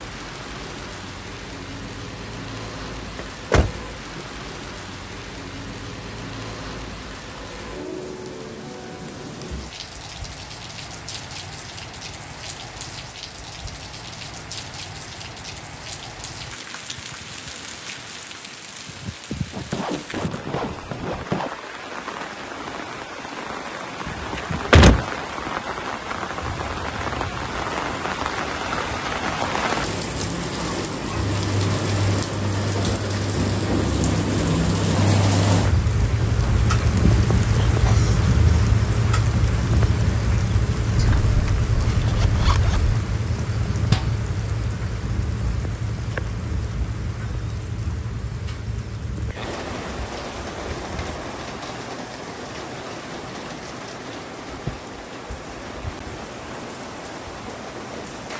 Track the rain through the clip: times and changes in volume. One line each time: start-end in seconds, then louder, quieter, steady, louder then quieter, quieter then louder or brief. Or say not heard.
0.0-58.3 louder then quieter.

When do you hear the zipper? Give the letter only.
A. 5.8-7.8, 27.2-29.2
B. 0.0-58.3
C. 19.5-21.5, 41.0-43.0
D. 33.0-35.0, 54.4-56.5
C.